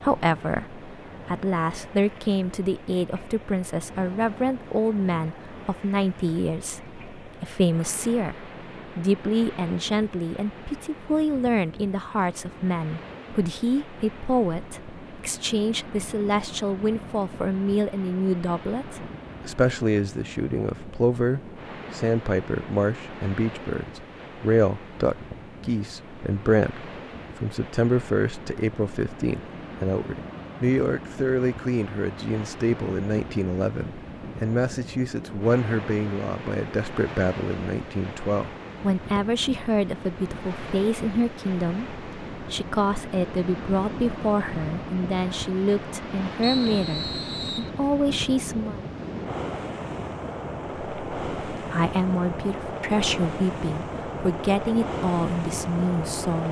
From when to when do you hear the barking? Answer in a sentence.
The barking can't be heard in this clip.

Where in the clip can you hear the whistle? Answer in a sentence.
The whistle can be heard from 46.4 to 47.7 s.